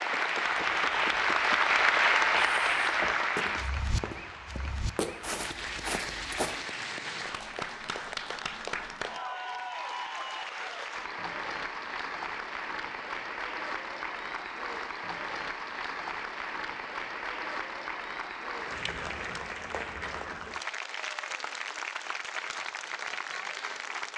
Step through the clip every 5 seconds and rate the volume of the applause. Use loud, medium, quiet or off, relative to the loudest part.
loud, medium, medium, medium, medium.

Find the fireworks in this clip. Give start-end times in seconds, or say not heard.
not heard.